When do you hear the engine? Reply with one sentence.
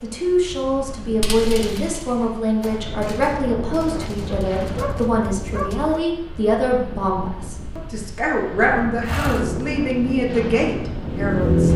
The engine can be heard from 9.1 to 11.7 s.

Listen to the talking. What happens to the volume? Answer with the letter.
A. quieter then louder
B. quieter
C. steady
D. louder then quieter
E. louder
C.